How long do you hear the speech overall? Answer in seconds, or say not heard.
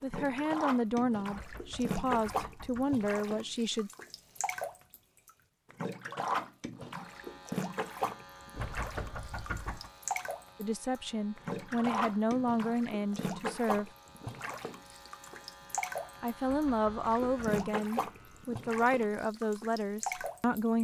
12 s.